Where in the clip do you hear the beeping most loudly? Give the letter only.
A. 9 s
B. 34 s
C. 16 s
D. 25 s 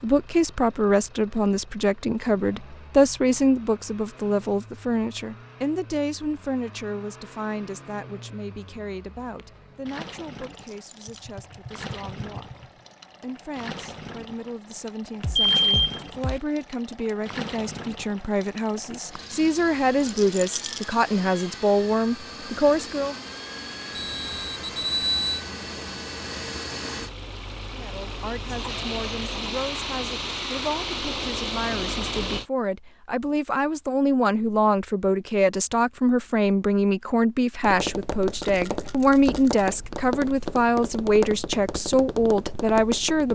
C.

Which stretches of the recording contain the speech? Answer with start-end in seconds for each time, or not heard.
0.0-23.1, 27.7-43.3.